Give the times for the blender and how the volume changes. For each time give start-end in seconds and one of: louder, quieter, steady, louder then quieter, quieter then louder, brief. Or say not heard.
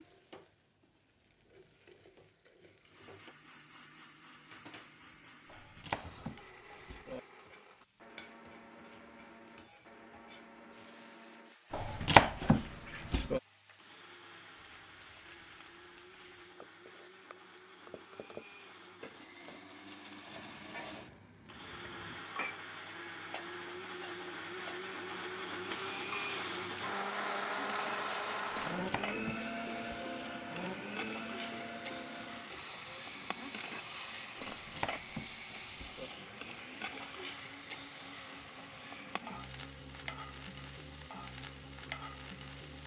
2.8-42.8 louder then quieter.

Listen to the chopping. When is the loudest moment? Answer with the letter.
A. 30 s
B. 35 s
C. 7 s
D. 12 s
D.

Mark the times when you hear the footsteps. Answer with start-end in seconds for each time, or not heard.
not heard.